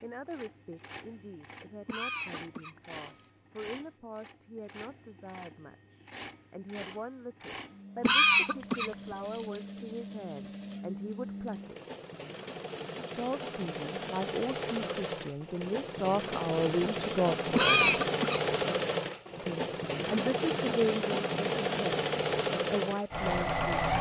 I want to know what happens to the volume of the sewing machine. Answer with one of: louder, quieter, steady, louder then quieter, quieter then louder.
louder.